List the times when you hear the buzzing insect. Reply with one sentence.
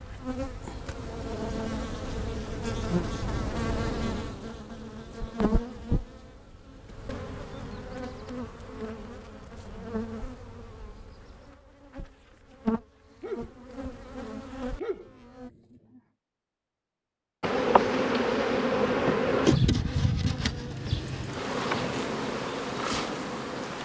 The buzzing insect can be heard from 0.0 to 15.5 s and from 17.4 to 23.8 s.